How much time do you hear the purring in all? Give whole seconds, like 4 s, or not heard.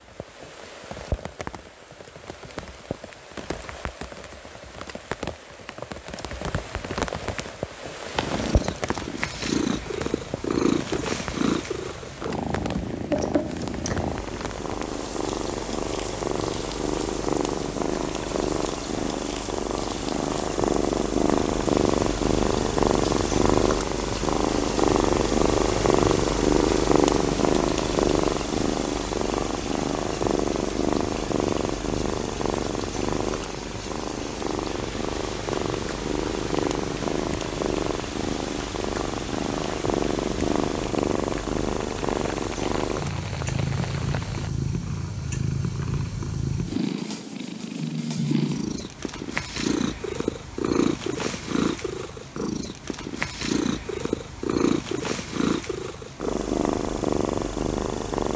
50 s.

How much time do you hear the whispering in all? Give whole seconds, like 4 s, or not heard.
not heard.